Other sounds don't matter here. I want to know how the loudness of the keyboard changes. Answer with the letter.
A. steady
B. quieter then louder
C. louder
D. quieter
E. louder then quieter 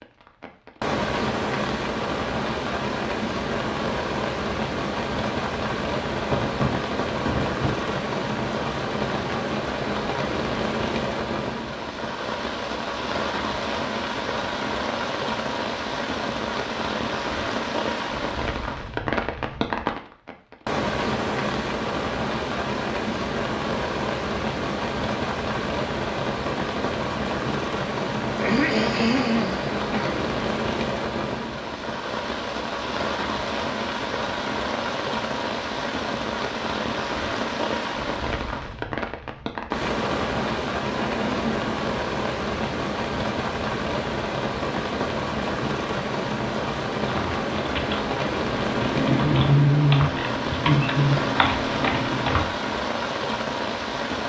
E.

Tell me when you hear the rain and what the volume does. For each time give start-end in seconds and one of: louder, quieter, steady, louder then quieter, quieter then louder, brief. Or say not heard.
0.0-54.2 steady.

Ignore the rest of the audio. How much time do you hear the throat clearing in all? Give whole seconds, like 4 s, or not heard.
4 s.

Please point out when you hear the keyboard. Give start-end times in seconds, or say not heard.
47.1-52.5.